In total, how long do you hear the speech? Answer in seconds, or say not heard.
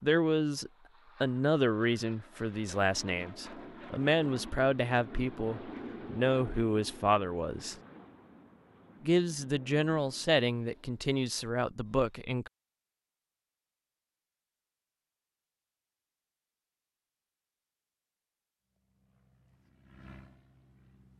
11 s.